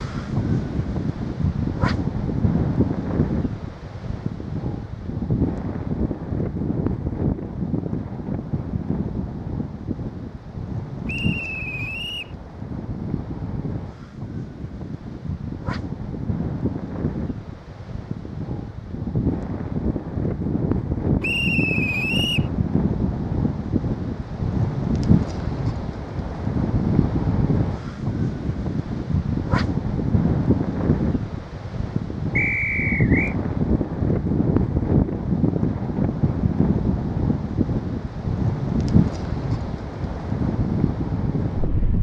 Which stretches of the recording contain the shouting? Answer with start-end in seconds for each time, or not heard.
not heard.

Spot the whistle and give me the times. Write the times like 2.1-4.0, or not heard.
11.1-12.3, 21.2-22.5, 32.4-33.4.